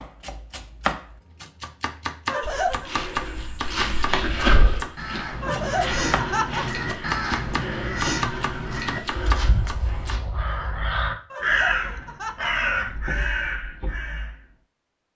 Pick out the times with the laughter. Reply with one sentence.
You can hear the laughter from 2.2 to 2.9 s, from 5.4 to 7.0 s and from 11.3 to 13.6 s.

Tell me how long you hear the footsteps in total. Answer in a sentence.
You can hear the footsteps for 8 seconds altogether.